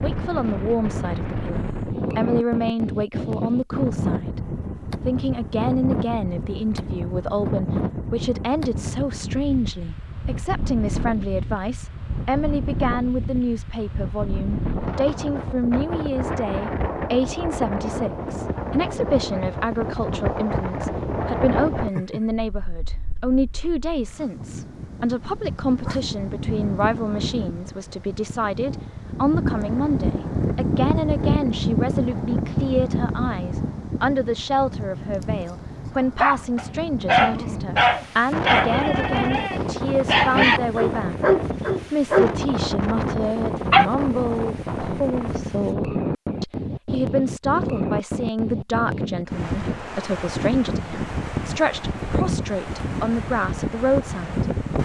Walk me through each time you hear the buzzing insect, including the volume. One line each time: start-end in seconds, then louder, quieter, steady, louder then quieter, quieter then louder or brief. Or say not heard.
not heard.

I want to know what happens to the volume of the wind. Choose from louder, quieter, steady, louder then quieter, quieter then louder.
steady.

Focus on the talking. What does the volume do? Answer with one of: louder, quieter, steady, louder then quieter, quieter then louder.
steady.